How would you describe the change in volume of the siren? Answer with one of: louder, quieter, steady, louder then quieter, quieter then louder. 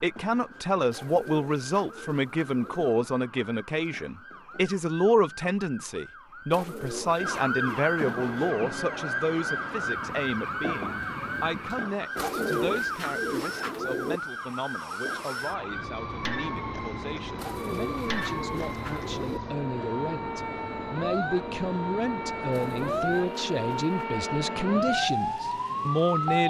louder.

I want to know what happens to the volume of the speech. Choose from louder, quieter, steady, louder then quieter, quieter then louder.
quieter then louder.